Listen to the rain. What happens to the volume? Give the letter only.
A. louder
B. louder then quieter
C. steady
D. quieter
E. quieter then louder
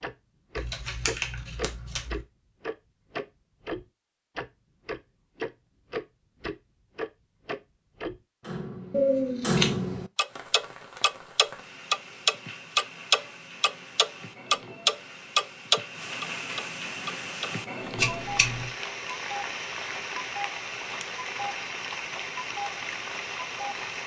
A.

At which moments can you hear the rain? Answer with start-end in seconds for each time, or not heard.
10.2-24.0.